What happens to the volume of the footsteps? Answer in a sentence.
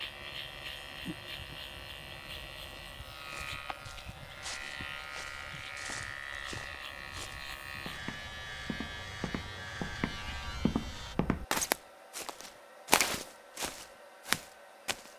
The volume of the footsteps goes up.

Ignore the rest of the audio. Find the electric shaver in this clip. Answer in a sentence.
You can hear the electric shaver from 0.0 to 11.2 s.